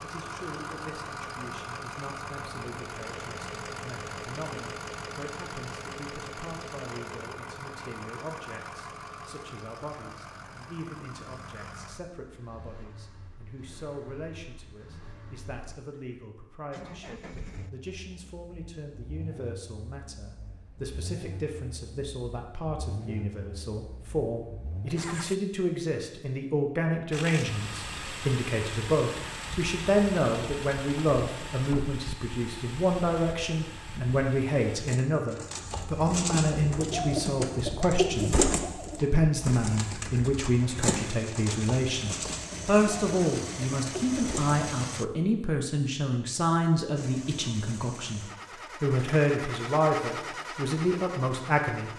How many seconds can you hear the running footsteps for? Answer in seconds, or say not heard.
not heard.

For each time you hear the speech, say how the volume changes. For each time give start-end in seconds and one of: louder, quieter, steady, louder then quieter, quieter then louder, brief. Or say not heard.
0.0-51.9 louder.